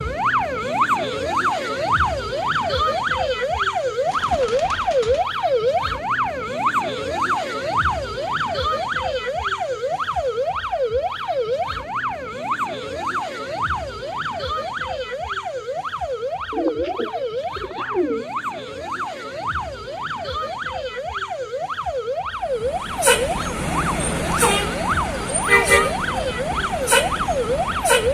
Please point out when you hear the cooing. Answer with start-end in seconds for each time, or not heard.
4.0-5.2, 16.5-18.2.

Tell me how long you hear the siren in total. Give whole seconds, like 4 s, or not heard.
28 s.